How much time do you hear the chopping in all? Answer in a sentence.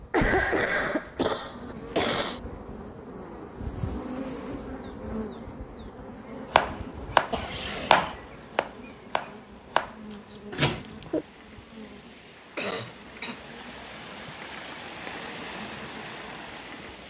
You can hear the chopping for 5 seconds altogether.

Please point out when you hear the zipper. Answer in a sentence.
You can't hear the zipper here.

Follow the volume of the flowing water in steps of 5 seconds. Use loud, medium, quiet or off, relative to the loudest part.
off, quiet, medium, loud.